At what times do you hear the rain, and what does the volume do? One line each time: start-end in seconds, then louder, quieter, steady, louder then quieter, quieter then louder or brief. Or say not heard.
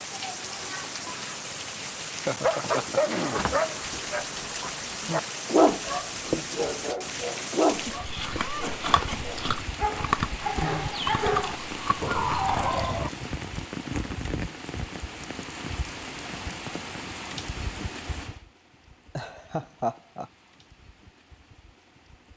0.0-22.3 quieter.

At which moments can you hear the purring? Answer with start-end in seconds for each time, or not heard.
not heard.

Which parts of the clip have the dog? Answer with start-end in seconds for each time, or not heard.
2.4-13.1.